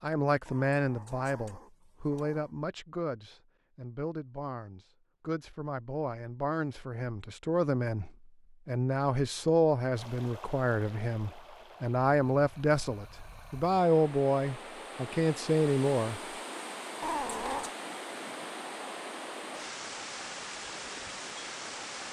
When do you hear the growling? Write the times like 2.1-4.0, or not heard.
0.5-2.5, 17.0-17.8.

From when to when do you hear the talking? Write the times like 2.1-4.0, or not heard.
0.0-16.2.